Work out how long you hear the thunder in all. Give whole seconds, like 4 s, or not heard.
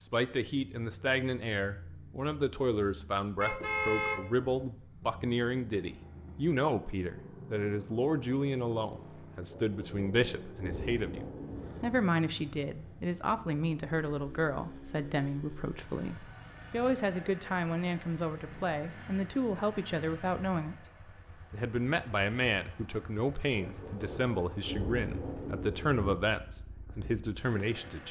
5 s.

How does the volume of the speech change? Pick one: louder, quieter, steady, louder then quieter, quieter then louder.
steady.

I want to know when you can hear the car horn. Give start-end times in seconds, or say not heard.
3.4-4.8.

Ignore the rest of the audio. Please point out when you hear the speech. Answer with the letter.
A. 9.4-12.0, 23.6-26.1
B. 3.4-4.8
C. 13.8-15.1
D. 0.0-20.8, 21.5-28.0
D.